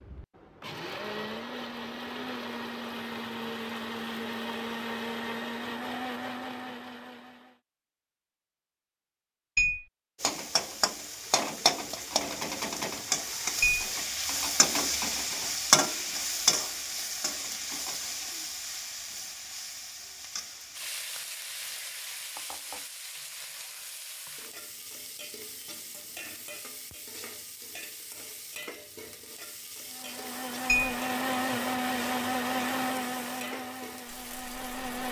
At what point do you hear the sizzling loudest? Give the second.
16 s.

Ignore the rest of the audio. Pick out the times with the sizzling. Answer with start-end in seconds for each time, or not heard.
10.2-35.0.